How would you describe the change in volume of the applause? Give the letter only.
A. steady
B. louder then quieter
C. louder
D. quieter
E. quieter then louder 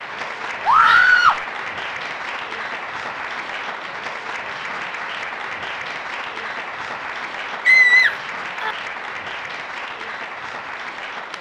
A.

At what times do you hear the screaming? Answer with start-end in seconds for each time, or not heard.
0.7-1.4, 7.7-8.8.